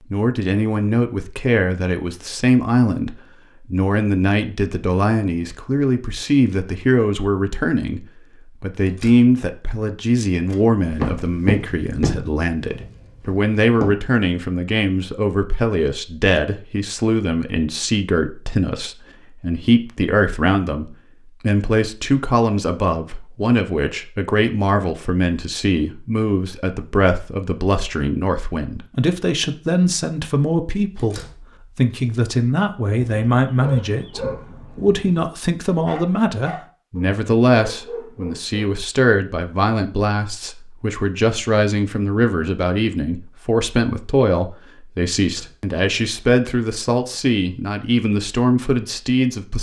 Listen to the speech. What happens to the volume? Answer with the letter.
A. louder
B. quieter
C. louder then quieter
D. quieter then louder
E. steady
E.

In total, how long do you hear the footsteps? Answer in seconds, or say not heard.
3 s.